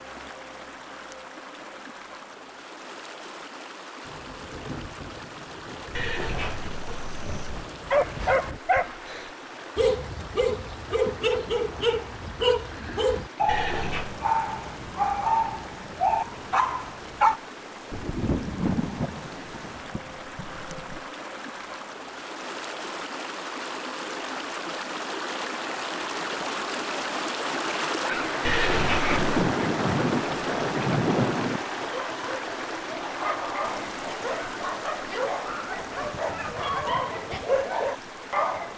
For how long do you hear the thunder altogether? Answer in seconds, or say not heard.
11 s.